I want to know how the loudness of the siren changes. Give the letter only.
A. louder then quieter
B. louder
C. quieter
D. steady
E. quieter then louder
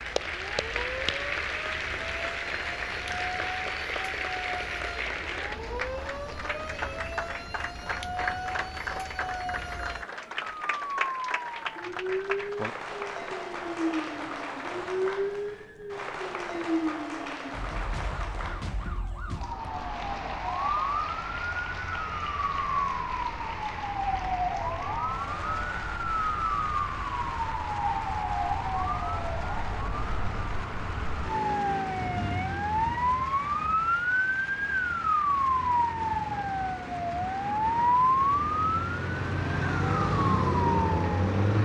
B.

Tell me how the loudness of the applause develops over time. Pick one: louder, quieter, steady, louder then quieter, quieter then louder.
quieter.